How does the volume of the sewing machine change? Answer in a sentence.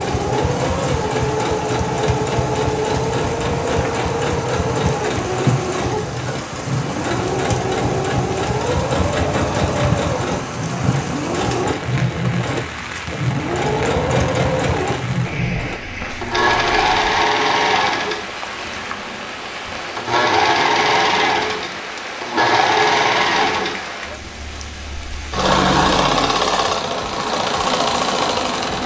The loudness of the sewing machine stays about the same.